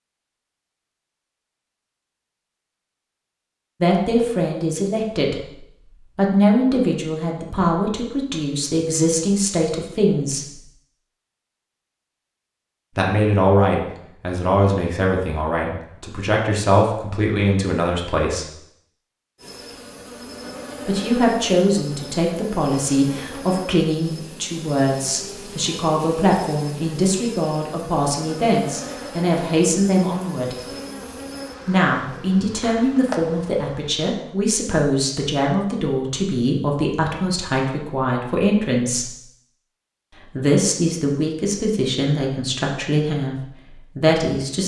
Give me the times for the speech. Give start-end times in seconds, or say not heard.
3.8-10.6, 12.9-18.4, 20.9-30.6, 31.6-39.1, 40.4-44.6.